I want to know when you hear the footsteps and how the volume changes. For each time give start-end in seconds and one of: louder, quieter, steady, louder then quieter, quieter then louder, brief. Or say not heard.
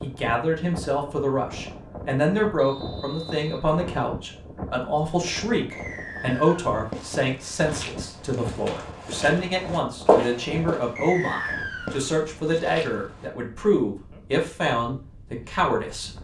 5.7-13.3 louder then quieter.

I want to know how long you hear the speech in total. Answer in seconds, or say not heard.
16 s.